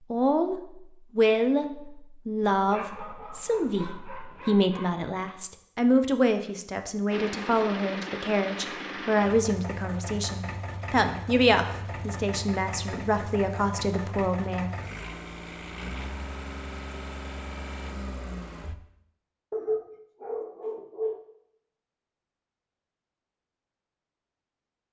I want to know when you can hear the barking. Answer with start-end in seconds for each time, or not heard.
2.4-5.0, 19.5-21.2.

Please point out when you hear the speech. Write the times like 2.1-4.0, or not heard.
0.1-14.7.